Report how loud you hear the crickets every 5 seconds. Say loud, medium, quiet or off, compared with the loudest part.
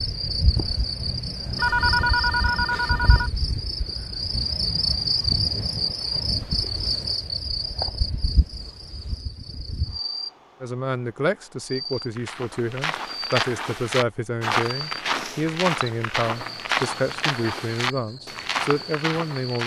loud, loud, medium, quiet.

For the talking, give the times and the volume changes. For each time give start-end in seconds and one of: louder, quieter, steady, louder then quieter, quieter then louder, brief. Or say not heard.
10.6-19.6 steady.